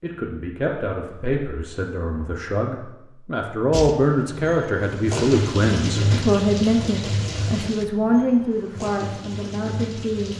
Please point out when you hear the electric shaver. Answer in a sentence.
The electric shaver can't be heard in this clip.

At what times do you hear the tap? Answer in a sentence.
You can hear the tap from 3.7 to 10.3 s.